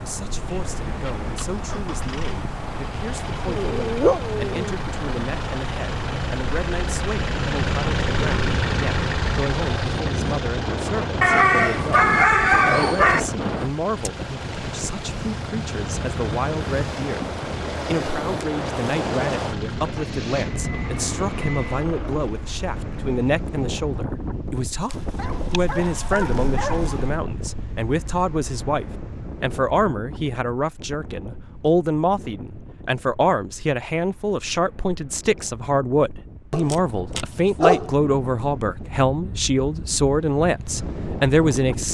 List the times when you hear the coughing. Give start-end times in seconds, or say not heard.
not heard.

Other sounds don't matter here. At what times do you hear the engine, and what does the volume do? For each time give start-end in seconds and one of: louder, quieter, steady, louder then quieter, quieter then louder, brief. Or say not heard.
0.2-22.5 louder then quieter.